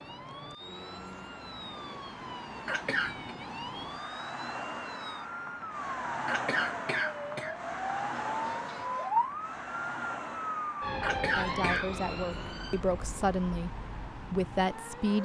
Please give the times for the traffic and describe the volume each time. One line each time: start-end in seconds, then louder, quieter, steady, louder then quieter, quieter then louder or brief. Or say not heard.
0.0-15.1 louder then quieter.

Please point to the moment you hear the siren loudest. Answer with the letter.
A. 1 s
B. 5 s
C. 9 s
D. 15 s
C.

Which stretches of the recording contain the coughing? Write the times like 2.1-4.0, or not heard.
2.6-3.3, 6.2-7.5, 11.0-11.9.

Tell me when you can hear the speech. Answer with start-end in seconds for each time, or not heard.
11.2-15.1.